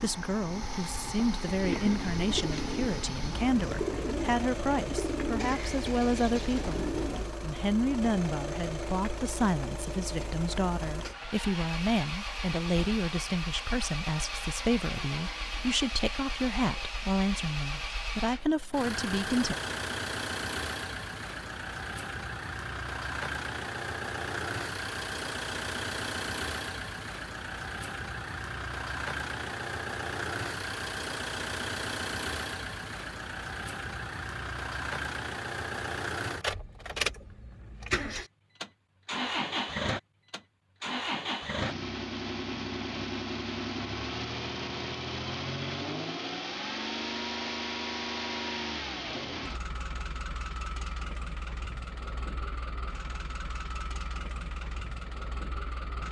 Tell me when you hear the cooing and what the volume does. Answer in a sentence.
The cooing can be heard from 1.6 to 7.3 s, at a steady volume.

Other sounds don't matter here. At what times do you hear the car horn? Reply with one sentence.
You can't hear the car horn here.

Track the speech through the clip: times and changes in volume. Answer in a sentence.
The speech can be heard from 0.0 to 19.6 s, at a steady volume.